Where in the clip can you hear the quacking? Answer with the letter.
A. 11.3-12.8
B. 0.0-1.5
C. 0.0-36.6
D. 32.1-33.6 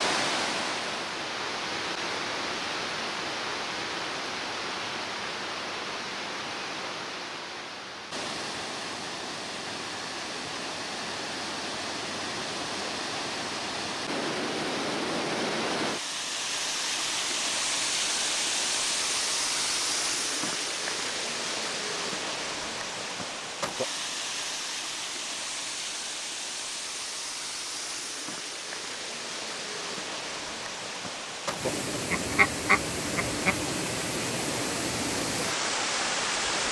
D.